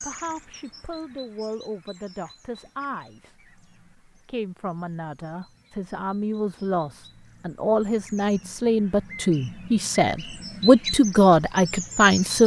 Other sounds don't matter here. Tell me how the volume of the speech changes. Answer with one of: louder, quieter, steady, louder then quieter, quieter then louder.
louder.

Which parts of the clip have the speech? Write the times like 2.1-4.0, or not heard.
0.0-12.4.